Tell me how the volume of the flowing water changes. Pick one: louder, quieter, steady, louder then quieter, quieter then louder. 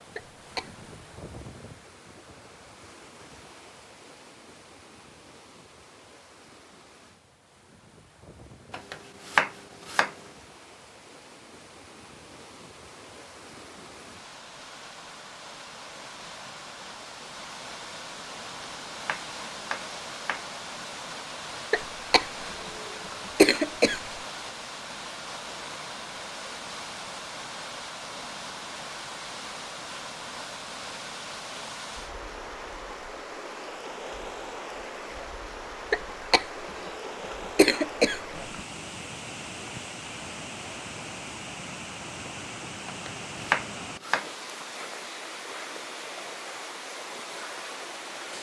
louder.